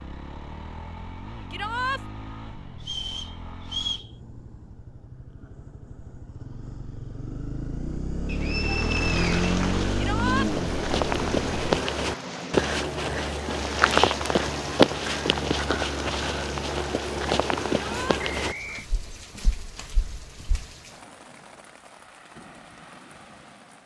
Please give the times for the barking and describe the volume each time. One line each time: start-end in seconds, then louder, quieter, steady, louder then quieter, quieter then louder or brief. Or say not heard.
not heard.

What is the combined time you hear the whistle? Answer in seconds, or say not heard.
3 s.